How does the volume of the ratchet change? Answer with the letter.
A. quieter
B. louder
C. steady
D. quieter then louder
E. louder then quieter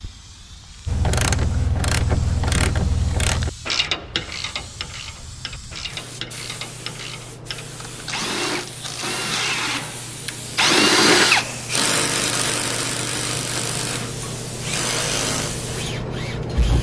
A.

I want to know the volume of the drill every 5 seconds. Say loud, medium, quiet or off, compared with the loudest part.
off, medium, loud, medium.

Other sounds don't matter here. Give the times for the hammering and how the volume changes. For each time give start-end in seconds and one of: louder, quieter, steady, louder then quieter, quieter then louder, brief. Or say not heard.
not heard.